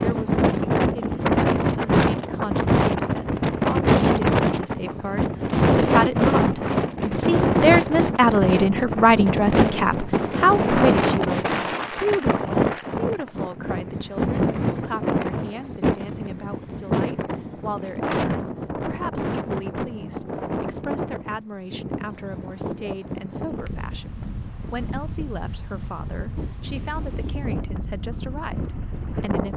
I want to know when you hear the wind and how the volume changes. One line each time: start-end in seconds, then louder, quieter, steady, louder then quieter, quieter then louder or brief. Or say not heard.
0.0-29.5 quieter.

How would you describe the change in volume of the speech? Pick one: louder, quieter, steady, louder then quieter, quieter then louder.
louder then quieter.